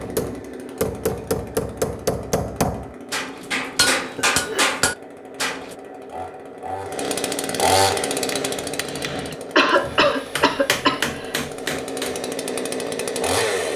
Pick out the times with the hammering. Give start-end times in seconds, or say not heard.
0.0-5.8, 8.1-12.2.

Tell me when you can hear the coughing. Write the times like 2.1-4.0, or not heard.
4.0-4.7, 9.3-11.3.